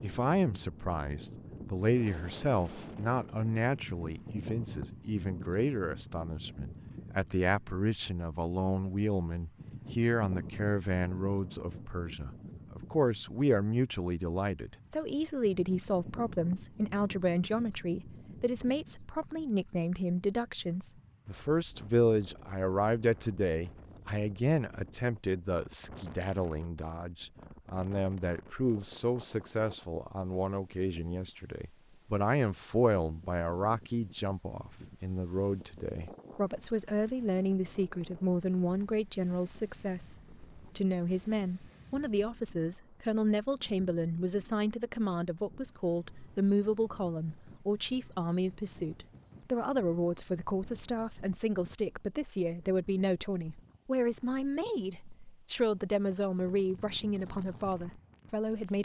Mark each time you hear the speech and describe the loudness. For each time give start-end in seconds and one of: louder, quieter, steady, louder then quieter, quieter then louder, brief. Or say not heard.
0.0-58.8 steady.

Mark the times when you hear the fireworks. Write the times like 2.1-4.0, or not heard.
not heard.